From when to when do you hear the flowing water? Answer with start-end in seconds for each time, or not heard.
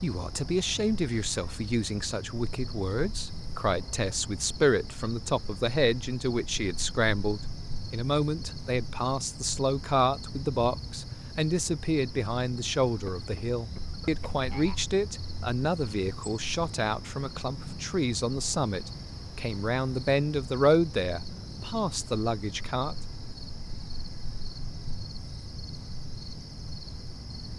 not heard.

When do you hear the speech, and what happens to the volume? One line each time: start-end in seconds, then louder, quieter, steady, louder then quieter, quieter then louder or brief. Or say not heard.
0.0-22.9 steady.